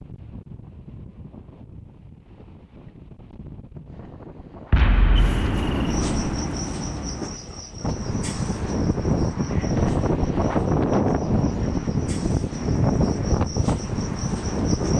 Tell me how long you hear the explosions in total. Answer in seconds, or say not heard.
3 s.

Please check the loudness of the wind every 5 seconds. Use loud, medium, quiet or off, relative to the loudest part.
quiet, loud, loud.